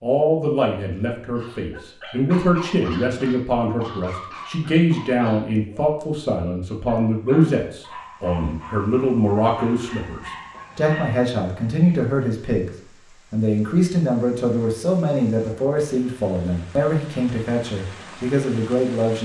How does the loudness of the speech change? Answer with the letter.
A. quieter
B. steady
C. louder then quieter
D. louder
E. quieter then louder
B.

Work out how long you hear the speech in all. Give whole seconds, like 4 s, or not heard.
19 s.